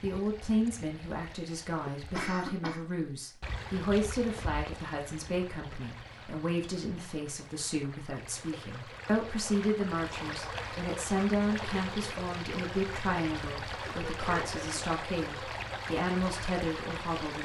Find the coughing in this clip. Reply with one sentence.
The coughing can be heard from 2.1 to 2.8 s and from 13.8 to 14.9 s.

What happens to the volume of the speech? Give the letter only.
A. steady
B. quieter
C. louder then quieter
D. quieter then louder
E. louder
A.